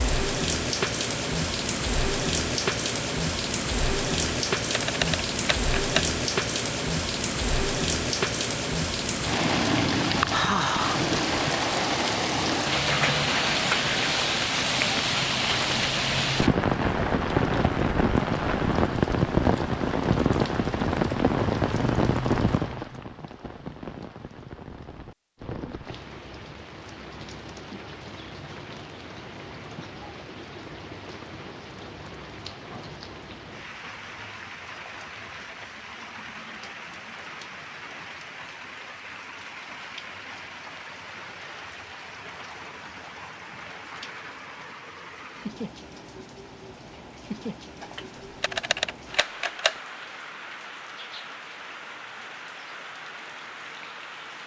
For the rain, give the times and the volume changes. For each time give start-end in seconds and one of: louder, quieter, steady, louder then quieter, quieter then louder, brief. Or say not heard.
0.0-54.4 quieter.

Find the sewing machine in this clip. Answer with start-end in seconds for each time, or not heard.
not heard.